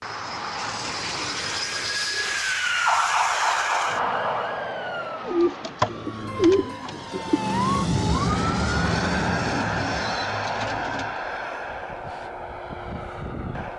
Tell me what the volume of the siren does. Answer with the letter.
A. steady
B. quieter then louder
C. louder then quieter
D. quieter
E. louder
B.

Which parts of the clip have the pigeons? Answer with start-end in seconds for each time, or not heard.
0.6-2.4, 5.2-7.5, 9.4-11.2.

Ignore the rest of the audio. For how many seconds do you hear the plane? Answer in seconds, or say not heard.
14 s.